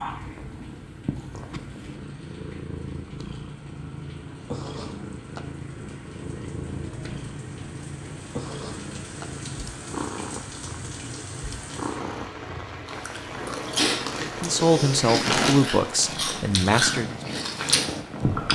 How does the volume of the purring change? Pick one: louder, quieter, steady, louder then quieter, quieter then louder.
steady.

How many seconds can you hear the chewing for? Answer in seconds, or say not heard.
6 s.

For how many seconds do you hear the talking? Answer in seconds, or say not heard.
3 s.